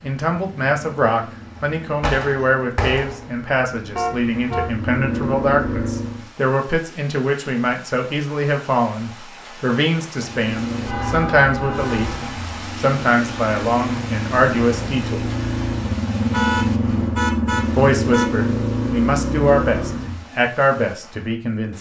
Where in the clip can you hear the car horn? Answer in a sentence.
You can hear the car horn from 4.0 to 4.8 s, from 10.8 to 12.3 s and from 16.3 to 18.3 s.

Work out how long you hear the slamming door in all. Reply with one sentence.
You can hear the slamming door for 2 seconds altogether.